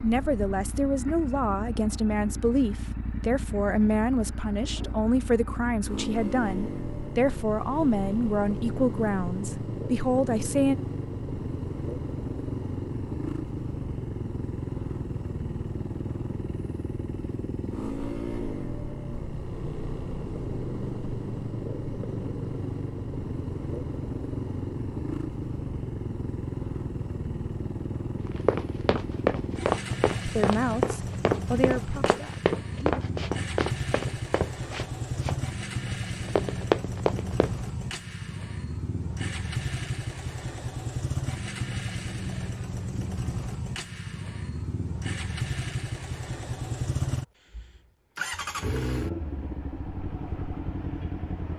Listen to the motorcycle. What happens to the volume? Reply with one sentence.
The volume of the motorcycle stays about the same.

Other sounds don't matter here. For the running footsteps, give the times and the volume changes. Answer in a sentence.
You can hear the running footsteps from 28.2 to 37.5 s, getting quieter then louder.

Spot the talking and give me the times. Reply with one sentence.
You can hear the talking from 0.0 to 10.8 s and from 30.2 to 33.0 s.